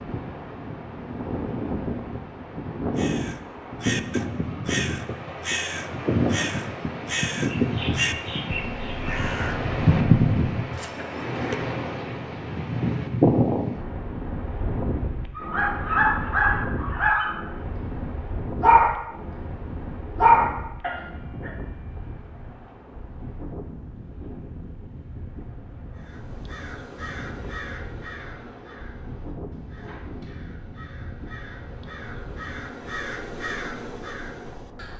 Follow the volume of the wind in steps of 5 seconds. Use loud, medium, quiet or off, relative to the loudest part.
medium, loud, loud, medium, quiet, quiet, quiet.